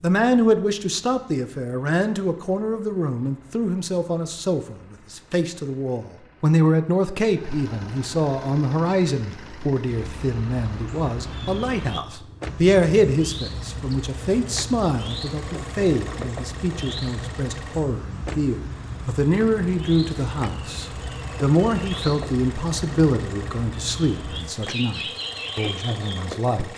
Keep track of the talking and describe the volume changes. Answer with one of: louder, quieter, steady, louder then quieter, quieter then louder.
steady.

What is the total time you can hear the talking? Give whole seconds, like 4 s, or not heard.
27 s.